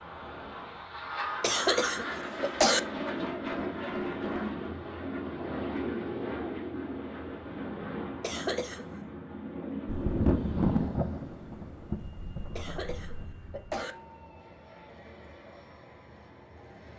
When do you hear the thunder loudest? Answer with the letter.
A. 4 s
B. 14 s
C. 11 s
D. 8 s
C.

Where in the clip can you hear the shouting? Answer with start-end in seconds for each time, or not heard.
not heard.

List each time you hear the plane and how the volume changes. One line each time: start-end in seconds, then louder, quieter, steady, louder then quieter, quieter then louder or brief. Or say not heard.
0.0-16.9 quieter.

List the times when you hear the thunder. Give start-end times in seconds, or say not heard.
9.8-13.2.